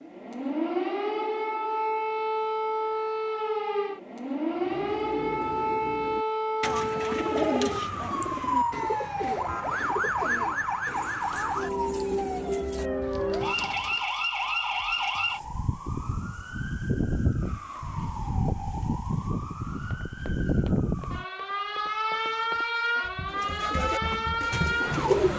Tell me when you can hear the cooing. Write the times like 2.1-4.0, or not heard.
4.5-14.1, 23.3-25.3.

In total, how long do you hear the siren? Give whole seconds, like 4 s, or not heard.
25 s.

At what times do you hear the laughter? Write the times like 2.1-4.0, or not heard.
not heard.